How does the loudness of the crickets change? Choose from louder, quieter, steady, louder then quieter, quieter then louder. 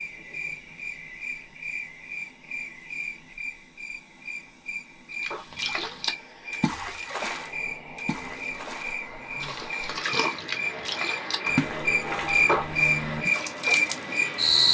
louder.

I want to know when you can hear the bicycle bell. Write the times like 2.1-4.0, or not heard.
not heard.